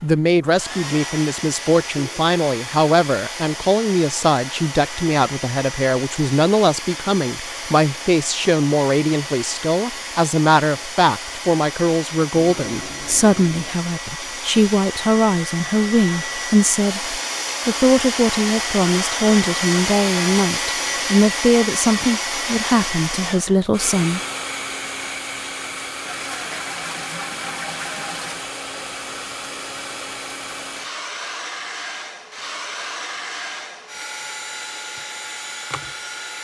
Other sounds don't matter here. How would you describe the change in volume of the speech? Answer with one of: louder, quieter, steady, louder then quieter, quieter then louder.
steady.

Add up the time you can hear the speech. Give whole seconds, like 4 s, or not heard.
24 s.